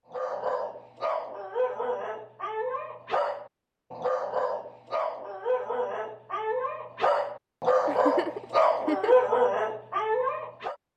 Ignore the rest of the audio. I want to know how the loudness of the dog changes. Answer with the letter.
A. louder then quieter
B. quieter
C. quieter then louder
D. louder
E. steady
D.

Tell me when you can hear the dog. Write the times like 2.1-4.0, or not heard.
0.1-10.8.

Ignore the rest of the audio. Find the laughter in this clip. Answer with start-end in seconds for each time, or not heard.
7.8-9.2.